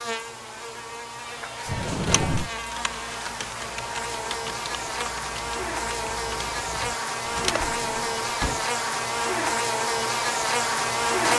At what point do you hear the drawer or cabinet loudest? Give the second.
2 s.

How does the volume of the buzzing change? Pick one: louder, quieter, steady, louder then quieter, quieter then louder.
louder.